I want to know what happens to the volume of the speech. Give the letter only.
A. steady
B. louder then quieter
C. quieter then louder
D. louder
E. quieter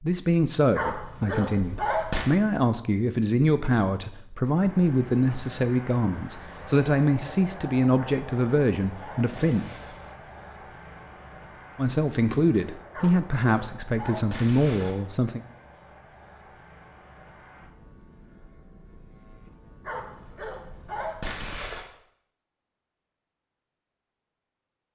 A.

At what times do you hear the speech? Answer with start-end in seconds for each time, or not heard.
0.0-9.7, 11.8-15.4.